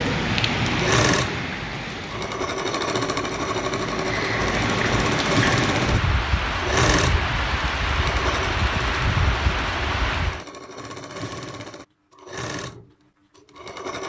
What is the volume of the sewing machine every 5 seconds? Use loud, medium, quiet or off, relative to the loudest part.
loud, loud, medium.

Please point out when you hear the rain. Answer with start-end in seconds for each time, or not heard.
0.0-10.4.